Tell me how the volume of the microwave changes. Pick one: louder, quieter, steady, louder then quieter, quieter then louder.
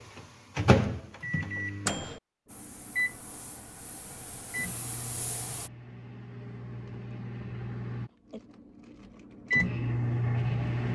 quieter then louder.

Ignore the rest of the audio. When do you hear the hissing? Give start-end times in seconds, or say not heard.
2.5-5.7.